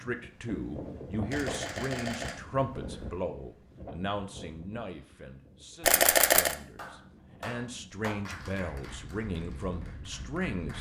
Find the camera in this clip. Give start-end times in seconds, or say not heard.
1.3-3.2, 5.8-6.5.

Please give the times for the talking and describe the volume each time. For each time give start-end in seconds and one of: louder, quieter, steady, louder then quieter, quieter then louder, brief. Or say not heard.
0.0-10.7 quieter then louder.